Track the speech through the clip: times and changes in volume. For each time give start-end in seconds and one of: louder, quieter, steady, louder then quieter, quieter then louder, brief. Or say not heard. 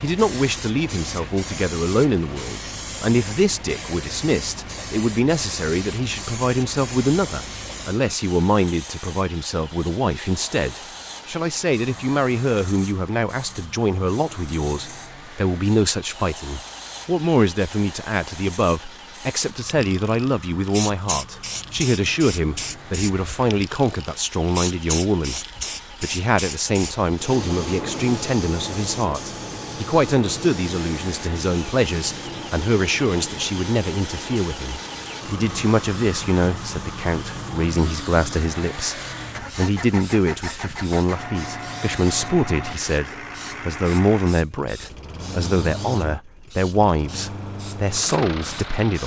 0.0-49.0 steady.